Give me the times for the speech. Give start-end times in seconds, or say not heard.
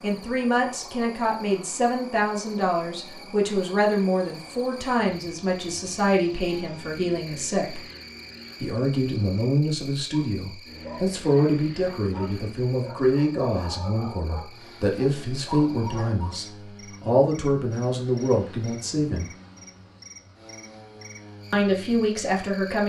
0.0-7.8, 8.6-19.3, 21.5-22.8.